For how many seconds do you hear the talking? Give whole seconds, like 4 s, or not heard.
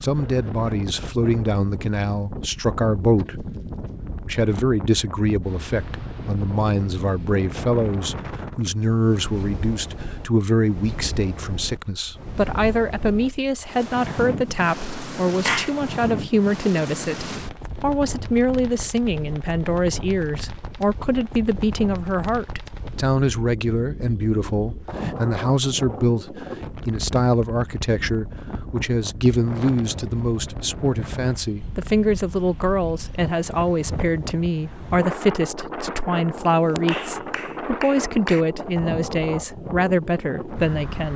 40 s.